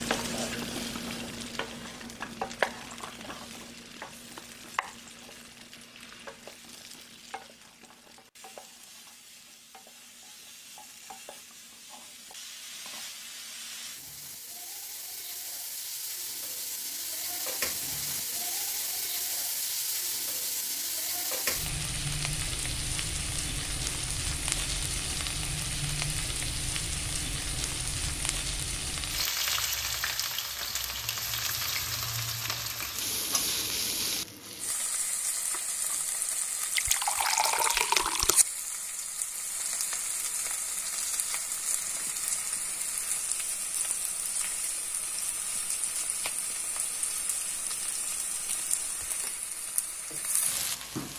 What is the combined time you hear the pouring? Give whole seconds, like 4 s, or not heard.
2 s.